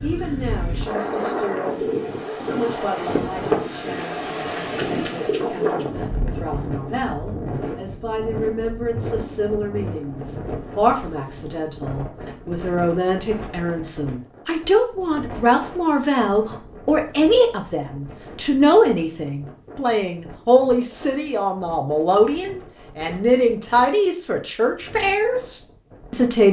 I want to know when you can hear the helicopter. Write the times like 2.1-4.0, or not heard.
not heard.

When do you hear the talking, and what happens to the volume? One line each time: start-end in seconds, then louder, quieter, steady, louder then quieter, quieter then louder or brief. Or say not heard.
0.0-26.4 louder.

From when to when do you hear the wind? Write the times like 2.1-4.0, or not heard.
0.0-26.4.